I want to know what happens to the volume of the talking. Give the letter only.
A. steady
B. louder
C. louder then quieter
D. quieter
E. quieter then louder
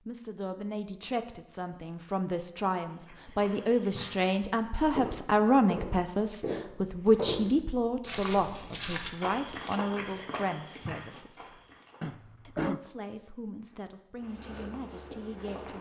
C.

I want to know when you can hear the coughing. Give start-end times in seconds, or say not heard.
12.0-12.8.